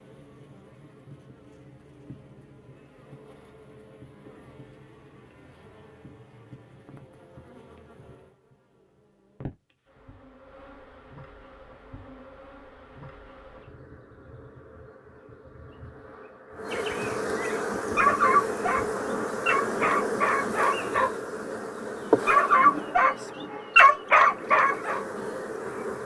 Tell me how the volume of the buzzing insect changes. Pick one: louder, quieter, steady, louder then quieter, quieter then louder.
louder.